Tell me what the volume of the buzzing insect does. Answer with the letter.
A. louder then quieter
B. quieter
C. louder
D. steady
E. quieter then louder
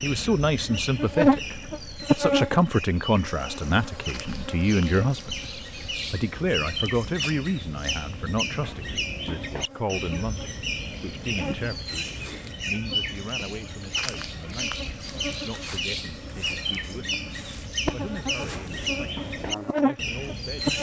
E.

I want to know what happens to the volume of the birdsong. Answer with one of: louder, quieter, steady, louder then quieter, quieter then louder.
louder.